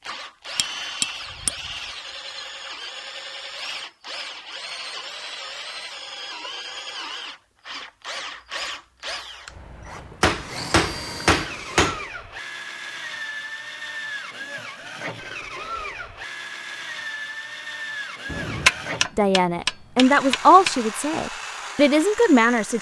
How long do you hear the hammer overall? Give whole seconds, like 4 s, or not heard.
5 s.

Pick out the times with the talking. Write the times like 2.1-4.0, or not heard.
19.1-22.7.